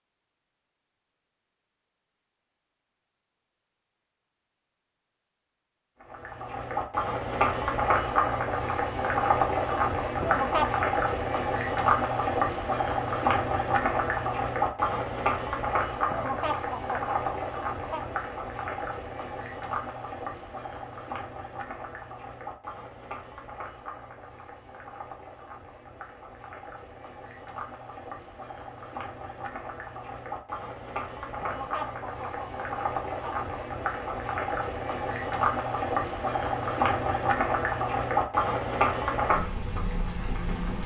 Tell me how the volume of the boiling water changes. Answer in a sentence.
The loudness of the boiling water goes down, then up.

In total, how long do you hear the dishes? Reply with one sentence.
You can't hear the dishes here.